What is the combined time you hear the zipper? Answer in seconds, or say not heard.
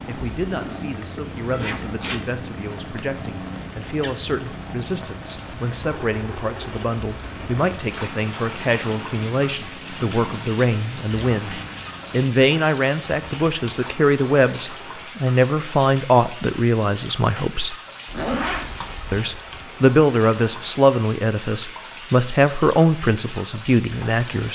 2 s.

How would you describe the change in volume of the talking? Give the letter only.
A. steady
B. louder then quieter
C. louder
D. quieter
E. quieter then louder
C.